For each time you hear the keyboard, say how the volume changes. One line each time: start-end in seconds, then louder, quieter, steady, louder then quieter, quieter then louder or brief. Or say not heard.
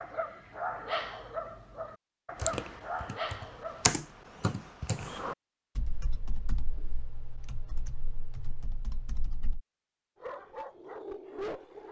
2.4-9.6 quieter.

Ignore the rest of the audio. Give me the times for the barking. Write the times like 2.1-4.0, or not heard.
0.0-3.9, 10.2-11.8.